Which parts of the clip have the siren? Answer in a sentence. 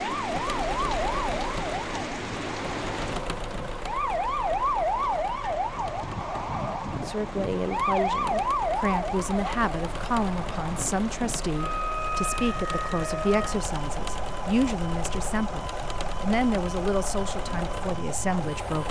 The siren can be heard from 0.0 to 18.8 s.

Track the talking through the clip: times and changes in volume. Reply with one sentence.
You can hear the talking from 7.0 to 18.8 s, at a steady volume.